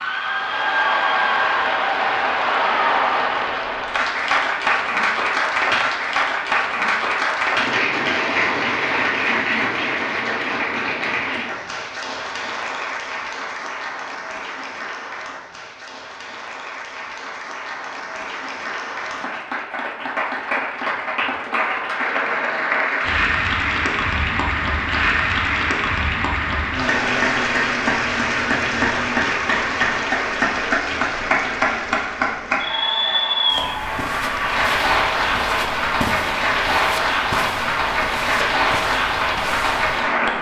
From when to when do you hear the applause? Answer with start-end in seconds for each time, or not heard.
0.0-40.3.